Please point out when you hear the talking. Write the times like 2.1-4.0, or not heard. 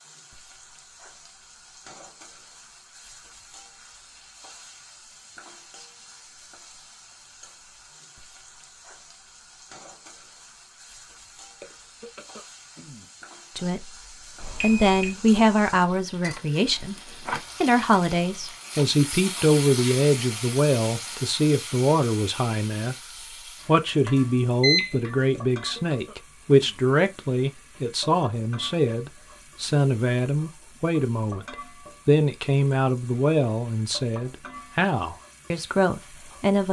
13.6-22.9, 23.6-36.6.